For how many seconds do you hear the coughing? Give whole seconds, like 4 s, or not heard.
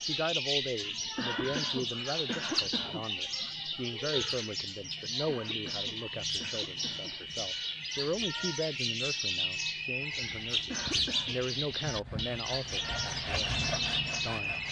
5 s.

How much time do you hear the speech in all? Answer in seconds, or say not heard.
14 s.